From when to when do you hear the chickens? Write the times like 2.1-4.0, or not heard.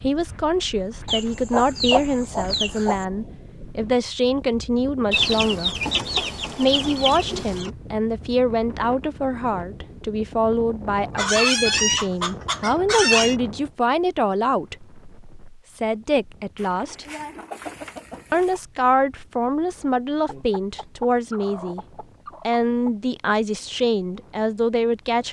1.1-3.0, 5.1-7.7, 11.1-13.3, 16.6-18.6, 20.2-22.9.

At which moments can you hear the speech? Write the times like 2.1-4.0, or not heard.
0.0-5.8, 6.5-17.1, 18.3-21.8, 22.4-25.2.